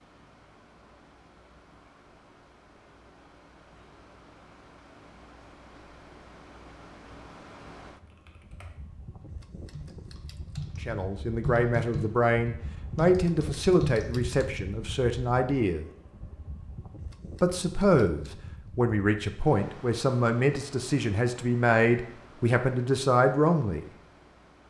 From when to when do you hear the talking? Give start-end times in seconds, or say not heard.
10.8-15.8, 17.4-23.9.